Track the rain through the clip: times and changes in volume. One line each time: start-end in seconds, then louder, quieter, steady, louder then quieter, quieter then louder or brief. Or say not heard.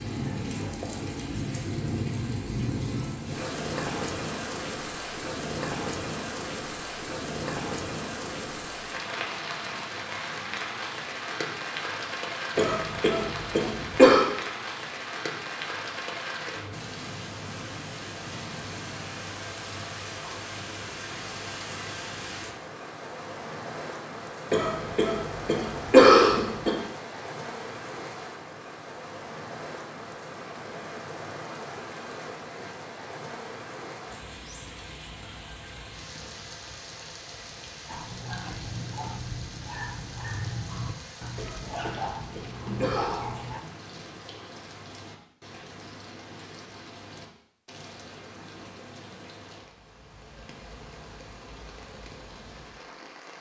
0.0-53.3 quieter.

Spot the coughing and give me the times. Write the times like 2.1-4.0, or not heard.
12.6-14.2, 24.5-26.8, 41.4-43.4.